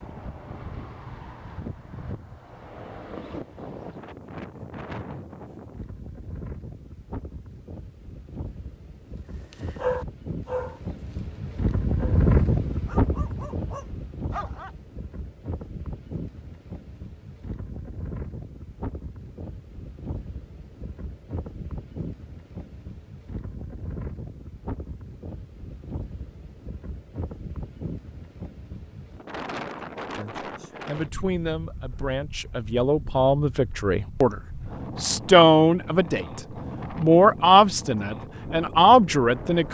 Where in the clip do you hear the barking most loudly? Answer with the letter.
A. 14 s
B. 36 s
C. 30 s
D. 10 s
D.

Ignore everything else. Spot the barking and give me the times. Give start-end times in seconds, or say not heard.
9.5-12.2, 12.8-14.7.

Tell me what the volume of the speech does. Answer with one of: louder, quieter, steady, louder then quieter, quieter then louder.
louder.